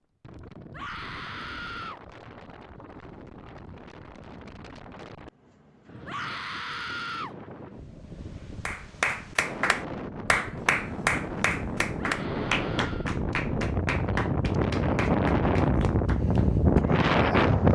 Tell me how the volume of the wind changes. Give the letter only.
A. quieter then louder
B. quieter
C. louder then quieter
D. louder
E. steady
D.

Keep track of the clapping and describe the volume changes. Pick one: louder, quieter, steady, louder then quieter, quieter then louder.
quieter.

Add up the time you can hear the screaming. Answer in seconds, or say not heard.
4 s.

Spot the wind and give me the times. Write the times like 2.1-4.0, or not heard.
0.2-17.7.